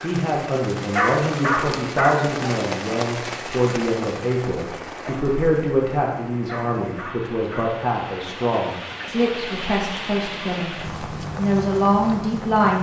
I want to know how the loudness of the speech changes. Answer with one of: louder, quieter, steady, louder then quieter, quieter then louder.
steady.